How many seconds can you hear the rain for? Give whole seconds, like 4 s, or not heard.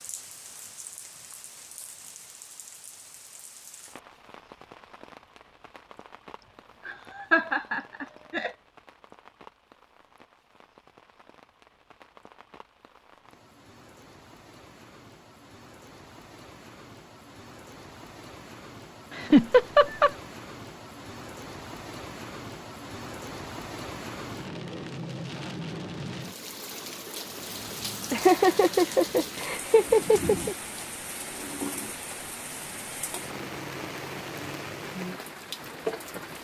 36 s.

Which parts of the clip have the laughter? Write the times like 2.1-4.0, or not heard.
6.8-8.5, 19.1-20.1, 28.1-30.6.